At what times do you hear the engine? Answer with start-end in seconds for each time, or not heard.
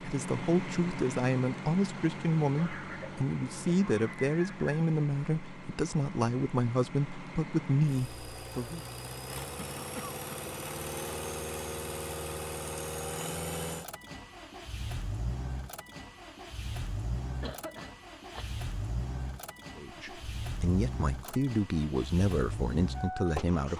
0.0-23.7.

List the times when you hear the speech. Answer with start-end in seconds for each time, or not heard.
0.0-8.8, 19.8-23.7.